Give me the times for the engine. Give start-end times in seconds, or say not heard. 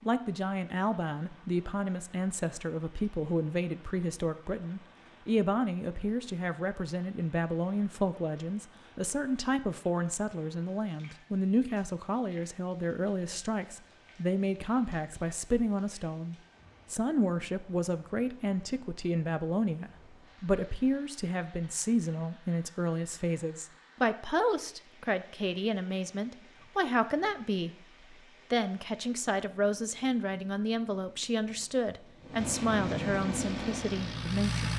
33.4-34.7.